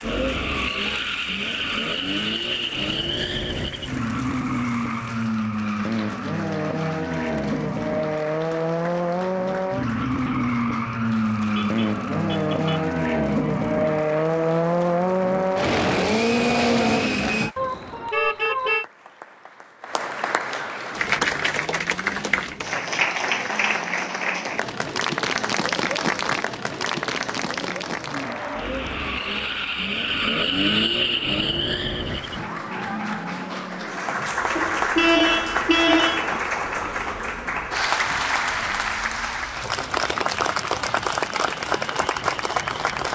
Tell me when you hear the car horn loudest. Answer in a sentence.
The volume of the car horn peaks at 35 seconds.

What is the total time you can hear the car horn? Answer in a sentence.
The car horn can be heard for 4 seconds in total.